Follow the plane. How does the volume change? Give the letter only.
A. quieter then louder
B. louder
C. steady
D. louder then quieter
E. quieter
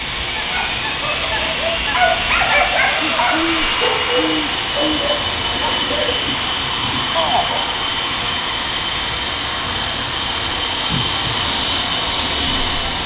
C.